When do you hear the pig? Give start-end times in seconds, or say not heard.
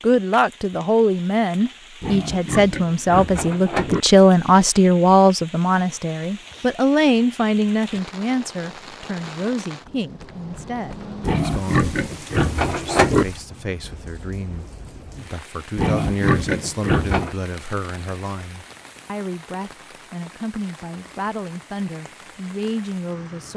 2.0-4.0, 11.2-13.2, 15.8-17.4.